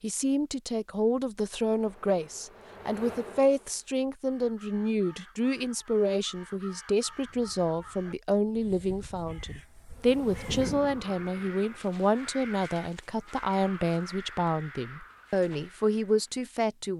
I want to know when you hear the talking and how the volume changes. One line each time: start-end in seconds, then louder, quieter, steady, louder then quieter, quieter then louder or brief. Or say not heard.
0.0-16.9 steady.